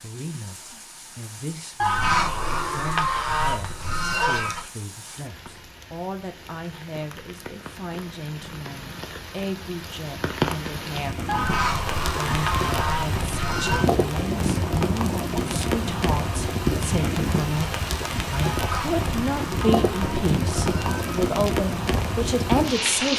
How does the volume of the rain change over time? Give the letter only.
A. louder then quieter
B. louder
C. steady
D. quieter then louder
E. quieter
B.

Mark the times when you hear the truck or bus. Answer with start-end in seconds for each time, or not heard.
not heard.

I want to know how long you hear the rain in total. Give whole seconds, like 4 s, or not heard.
23 s.